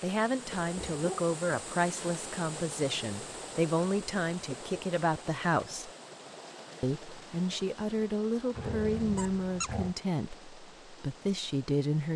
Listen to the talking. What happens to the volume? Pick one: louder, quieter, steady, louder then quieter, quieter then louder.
steady.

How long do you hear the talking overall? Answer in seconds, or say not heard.
11 s.